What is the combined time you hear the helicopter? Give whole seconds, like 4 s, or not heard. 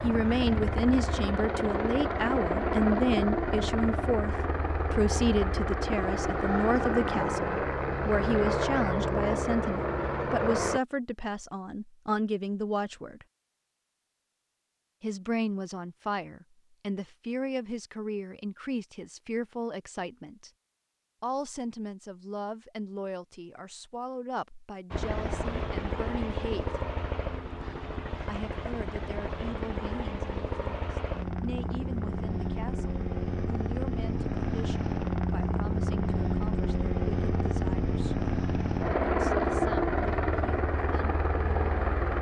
28 s.